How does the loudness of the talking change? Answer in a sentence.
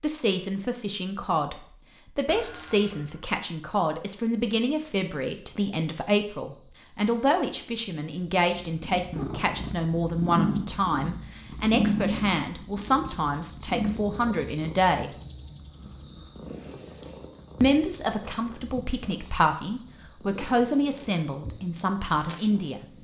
The loudness of the talking stays about the same.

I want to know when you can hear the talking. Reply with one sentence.
The talking can be heard from 0.0 to 15.1 s and from 17.6 to 22.9 s.